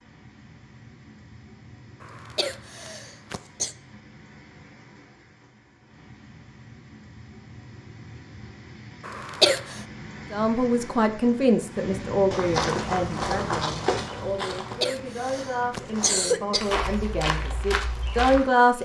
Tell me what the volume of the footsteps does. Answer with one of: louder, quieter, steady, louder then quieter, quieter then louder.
quieter then louder.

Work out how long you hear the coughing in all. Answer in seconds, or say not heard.
5 s.